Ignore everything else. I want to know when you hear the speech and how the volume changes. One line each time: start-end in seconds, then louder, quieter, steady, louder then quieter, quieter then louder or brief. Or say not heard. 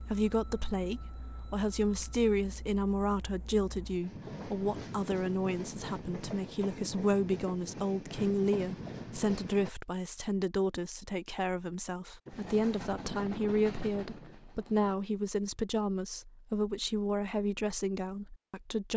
0.0-18.9 steady.